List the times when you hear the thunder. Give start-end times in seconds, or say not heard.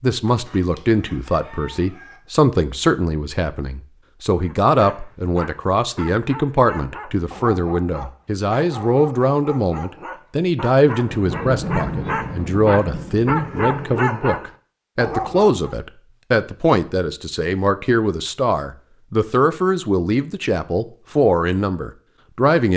11.1-13.8.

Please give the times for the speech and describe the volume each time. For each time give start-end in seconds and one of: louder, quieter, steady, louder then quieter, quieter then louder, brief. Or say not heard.
0.0-22.7 steady.